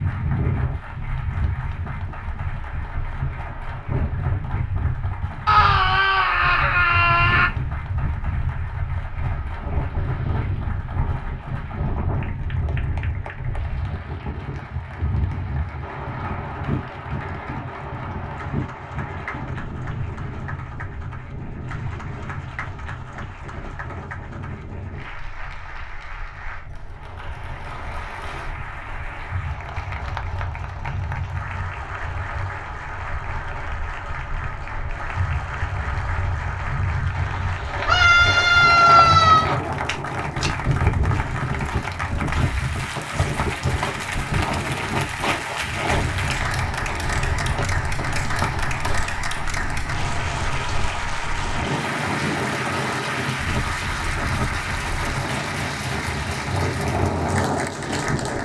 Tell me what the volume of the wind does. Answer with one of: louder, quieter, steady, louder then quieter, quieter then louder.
quieter then louder.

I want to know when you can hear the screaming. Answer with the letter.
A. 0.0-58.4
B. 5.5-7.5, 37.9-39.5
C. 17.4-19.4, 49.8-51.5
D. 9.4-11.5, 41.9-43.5
B.